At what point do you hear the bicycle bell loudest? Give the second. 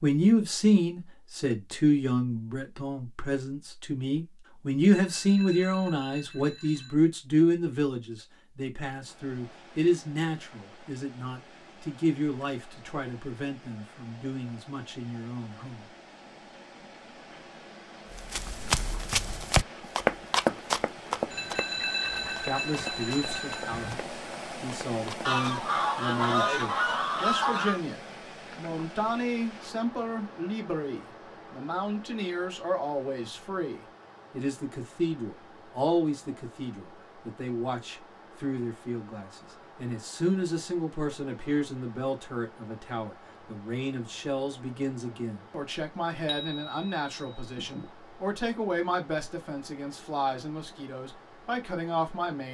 22 s.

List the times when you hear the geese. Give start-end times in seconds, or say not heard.
25.2-27.8.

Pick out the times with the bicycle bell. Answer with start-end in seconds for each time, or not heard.
5.0-7.0, 21.3-24.0, 46.2-47.9.